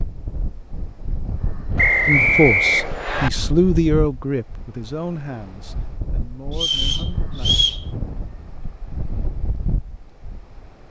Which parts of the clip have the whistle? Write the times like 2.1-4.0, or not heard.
1.8-3.3, 6.5-7.8.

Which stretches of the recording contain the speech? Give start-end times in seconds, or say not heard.
2.0-7.5.